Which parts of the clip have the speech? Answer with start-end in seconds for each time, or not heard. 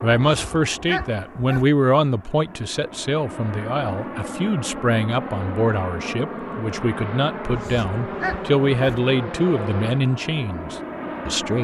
0.0-11.5.